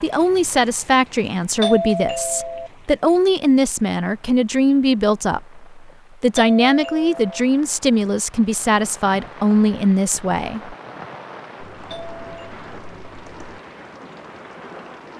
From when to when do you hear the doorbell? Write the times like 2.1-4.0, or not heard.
1.6-2.7, 6.3-7.5, 11.9-12.6.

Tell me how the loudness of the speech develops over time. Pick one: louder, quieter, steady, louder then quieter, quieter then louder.
steady.